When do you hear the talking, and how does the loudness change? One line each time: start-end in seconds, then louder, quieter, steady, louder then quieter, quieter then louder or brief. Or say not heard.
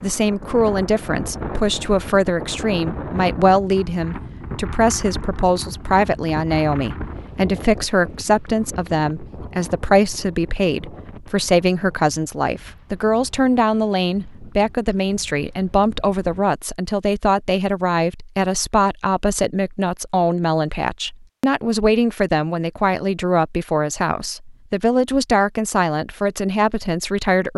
0.0-27.5 steady.